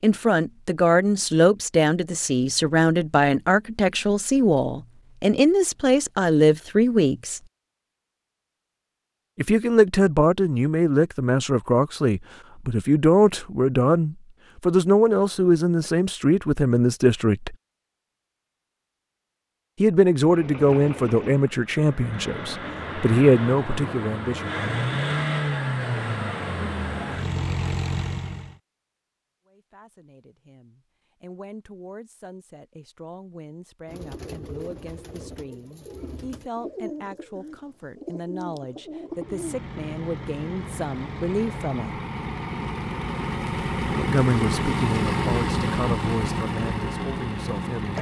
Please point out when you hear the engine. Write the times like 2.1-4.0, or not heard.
20.1-28.6, 39.1-47.9.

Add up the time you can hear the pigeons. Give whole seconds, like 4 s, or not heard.
6 s.